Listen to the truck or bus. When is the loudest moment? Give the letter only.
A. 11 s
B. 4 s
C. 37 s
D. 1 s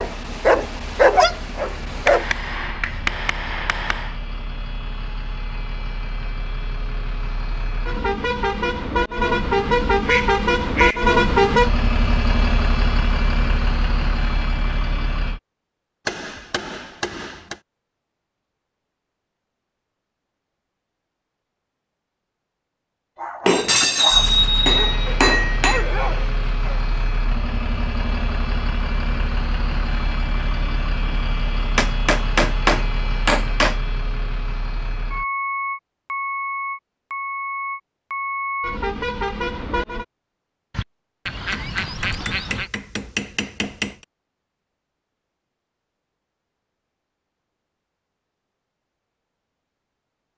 A.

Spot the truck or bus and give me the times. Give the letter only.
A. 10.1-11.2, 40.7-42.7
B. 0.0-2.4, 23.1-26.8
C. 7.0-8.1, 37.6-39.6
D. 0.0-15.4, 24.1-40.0
D.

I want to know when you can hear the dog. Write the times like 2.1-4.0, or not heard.
0.0-2.4, 23.1-26.8.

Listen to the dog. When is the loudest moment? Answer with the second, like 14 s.
1 s.